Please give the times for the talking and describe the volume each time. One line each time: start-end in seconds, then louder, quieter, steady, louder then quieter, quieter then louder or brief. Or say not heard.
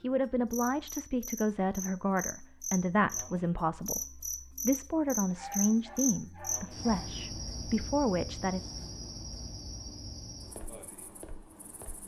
0.0-8.6 steady.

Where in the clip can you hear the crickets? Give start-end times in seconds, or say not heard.
0.0-12.0.